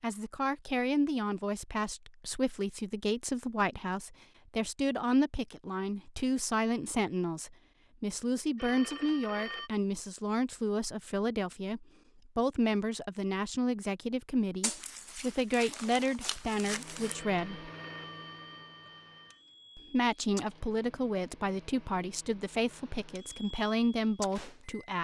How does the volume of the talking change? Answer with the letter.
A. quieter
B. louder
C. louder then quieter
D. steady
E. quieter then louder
D.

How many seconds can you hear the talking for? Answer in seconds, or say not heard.
23 s.